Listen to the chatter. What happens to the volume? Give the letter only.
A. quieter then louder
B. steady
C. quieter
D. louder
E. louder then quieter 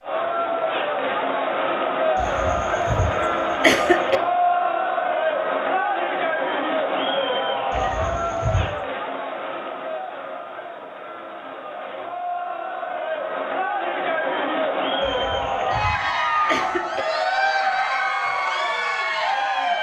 A.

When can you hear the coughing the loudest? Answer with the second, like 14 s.
4 s.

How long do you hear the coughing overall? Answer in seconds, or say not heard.
5 s.